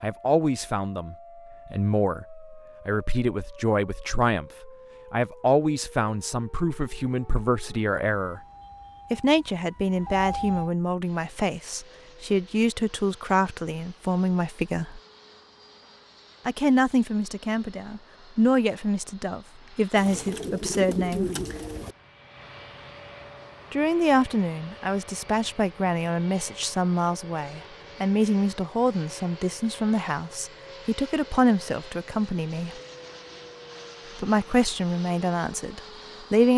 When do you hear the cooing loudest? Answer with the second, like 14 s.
21 s.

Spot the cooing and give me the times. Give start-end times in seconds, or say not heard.
19.9-21.9.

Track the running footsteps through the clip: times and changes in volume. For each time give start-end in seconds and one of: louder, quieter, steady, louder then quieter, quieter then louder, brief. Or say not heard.
not heard.